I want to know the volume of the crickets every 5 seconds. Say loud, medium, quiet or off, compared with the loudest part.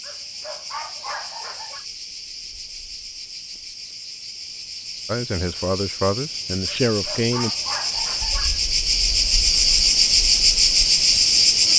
quiet, medium, loud.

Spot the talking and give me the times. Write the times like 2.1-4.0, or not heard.
5.0-7.5.